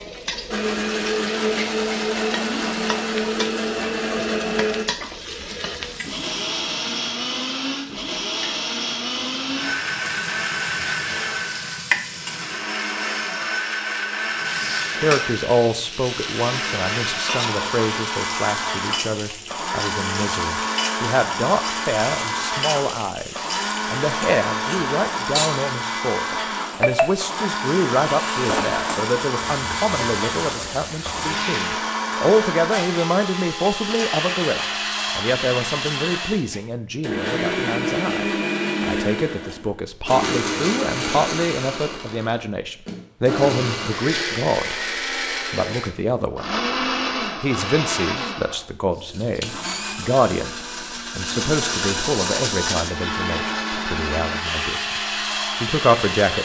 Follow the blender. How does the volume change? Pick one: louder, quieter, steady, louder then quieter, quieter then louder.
steady.